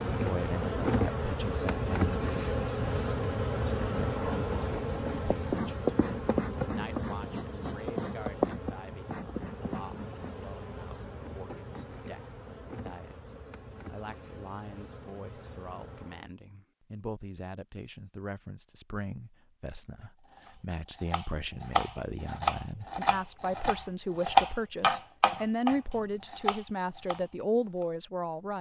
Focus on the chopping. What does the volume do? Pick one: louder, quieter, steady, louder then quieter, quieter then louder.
louder then quieter.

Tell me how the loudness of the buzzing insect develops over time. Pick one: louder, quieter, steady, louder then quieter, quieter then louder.
quieter.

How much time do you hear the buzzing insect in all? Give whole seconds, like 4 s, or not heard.
16 s.